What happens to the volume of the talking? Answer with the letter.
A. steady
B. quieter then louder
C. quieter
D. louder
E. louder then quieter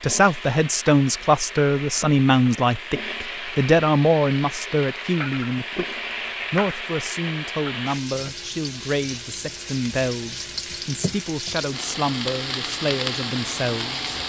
C.